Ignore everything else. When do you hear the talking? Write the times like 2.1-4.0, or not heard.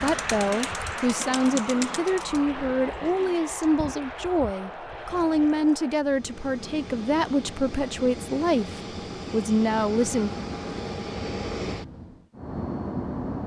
0.0-10.3.